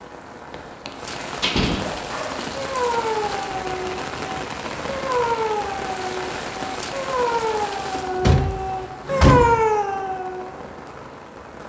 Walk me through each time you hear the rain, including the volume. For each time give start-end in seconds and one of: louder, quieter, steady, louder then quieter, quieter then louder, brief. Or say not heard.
0.0-11.6 quieter.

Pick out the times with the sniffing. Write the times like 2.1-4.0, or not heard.
not heard.